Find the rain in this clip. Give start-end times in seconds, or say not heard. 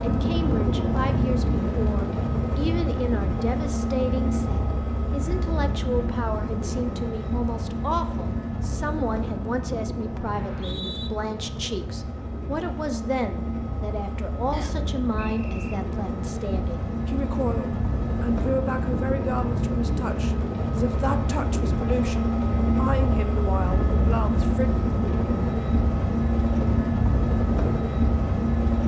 not heard.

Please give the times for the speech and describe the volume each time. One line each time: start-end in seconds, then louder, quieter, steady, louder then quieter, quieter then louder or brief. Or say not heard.
0.0-24.8 steady.